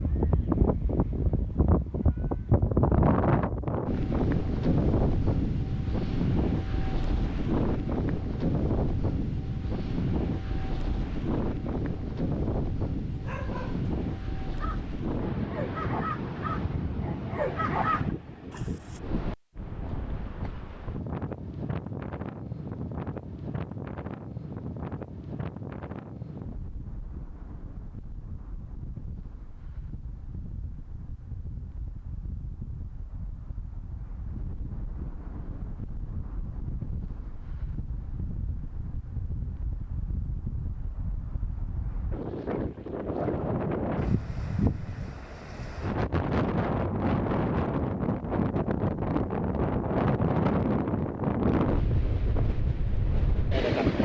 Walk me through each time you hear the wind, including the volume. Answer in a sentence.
You can hear the wind from 0.0 to 54.0 s, getting quieter then louder.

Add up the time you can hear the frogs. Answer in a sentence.
The frogs can't be heard in this clip.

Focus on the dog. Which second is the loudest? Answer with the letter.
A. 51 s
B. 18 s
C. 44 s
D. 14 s
B.